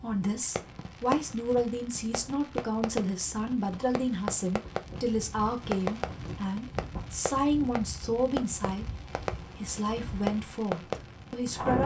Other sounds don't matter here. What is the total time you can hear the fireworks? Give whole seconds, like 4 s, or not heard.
11 s.